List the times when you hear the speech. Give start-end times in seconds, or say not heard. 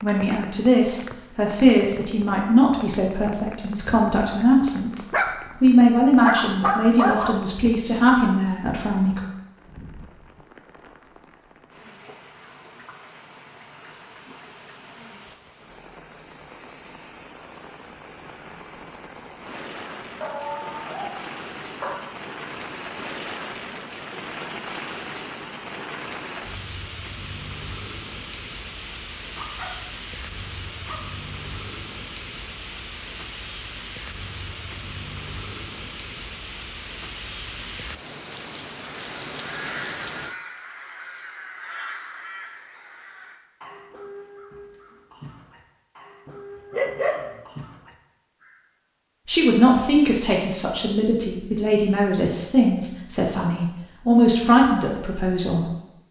0.0-9.2, 49.2-55.7.